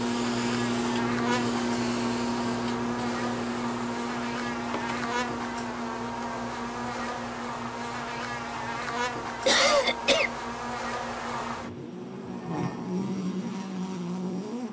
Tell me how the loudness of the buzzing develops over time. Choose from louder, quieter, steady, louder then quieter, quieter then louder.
steady.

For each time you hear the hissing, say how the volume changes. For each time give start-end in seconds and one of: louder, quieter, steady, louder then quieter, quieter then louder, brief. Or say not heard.
0.0-14.6 quieter.